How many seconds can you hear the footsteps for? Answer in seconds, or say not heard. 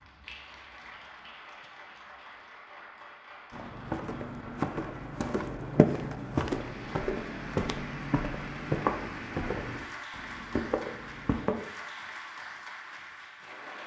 8 s.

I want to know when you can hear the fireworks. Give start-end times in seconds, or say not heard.
not heard.